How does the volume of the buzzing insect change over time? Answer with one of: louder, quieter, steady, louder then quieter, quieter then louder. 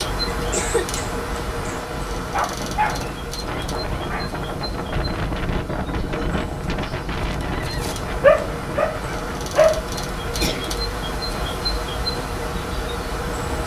quieter then louder.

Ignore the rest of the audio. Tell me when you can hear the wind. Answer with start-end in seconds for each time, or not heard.
0.0-13.6.